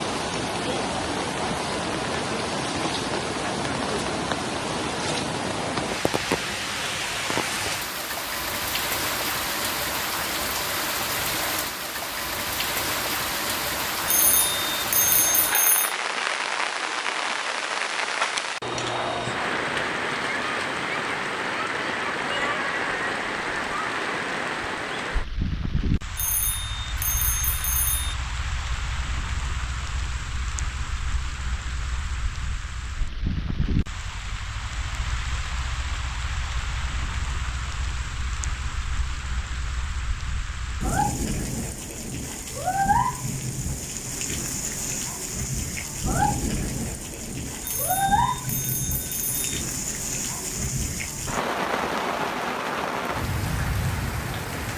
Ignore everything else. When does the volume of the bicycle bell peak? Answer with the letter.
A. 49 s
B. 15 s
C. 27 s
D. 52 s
B.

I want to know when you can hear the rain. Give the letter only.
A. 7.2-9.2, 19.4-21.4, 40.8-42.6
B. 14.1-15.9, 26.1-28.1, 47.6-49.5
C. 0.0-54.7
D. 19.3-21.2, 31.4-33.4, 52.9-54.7
C.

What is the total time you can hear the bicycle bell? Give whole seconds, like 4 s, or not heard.
6 s.